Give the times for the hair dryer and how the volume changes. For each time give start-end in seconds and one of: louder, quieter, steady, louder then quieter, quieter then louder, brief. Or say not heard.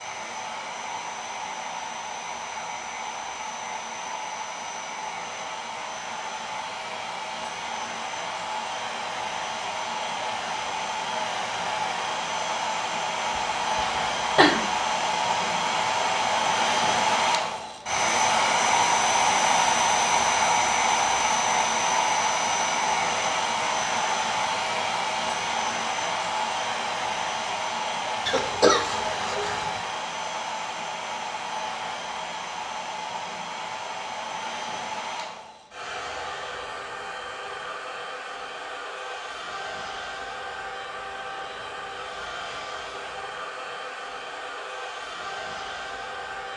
0.0-46.5 louder then quieter.